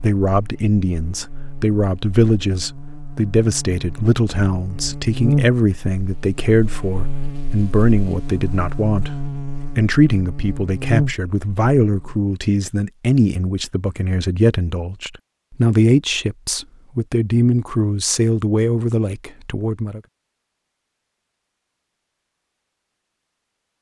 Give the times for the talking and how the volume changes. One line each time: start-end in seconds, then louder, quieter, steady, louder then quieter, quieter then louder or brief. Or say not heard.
0.0-20.0 steady.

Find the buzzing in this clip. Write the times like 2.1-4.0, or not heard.
0.2-12.2.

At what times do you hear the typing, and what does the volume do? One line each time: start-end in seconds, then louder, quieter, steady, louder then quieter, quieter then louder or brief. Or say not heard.
not heard.